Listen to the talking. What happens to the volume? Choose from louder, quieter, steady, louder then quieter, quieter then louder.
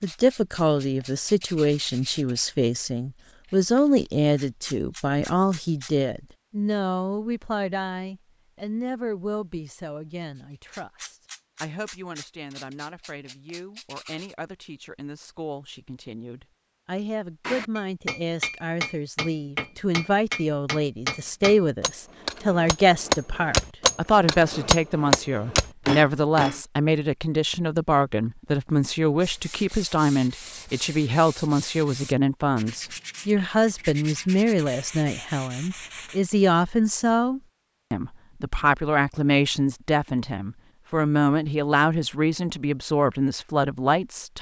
quieter then louder.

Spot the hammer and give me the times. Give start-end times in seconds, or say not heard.
17.4-26.6.